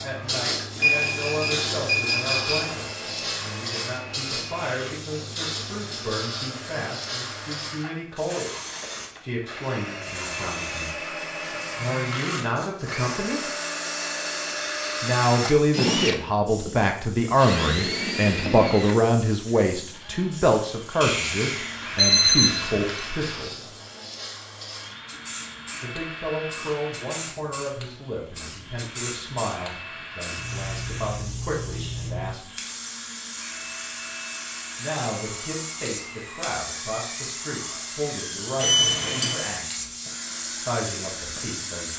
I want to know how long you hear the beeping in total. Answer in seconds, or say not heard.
5 s.